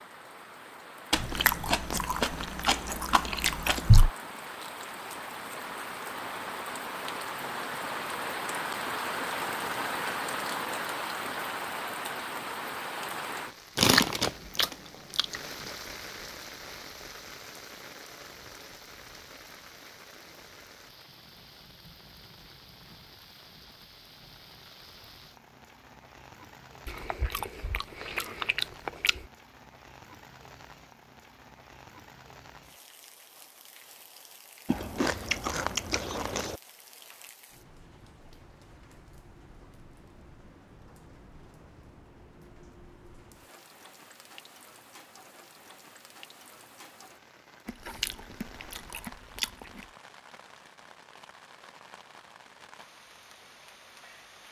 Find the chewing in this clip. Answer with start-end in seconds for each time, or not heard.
1.1-4.1, 13.8-15.4, 26.9-29.2, 34.6-36.6, 47.6-49.9.